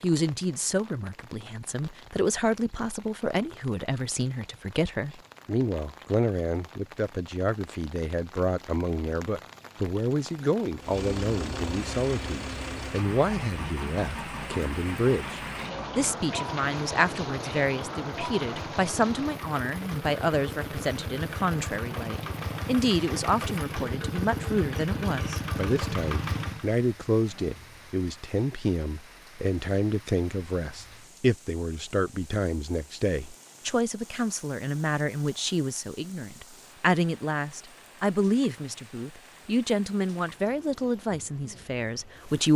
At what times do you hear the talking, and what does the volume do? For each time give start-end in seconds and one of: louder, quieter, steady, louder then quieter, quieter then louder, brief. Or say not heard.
0.0-42.5 steady.